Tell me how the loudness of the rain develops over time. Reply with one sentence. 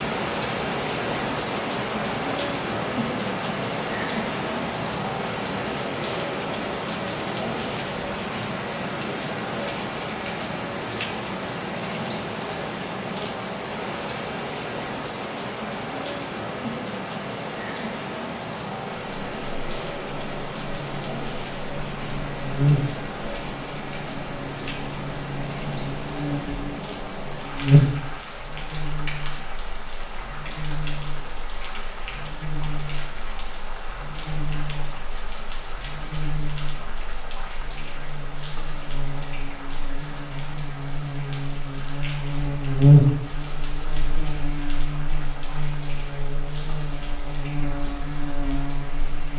The loudness of the rain goes down.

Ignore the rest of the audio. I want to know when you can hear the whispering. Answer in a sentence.
You can't hear the whispering here.